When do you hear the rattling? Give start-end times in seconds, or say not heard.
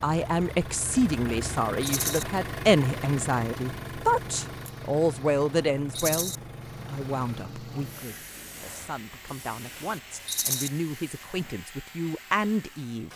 1.8-2.2, 6.0-6.4, 10.2-10.7.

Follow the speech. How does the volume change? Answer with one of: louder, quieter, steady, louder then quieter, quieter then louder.
quieter then louder.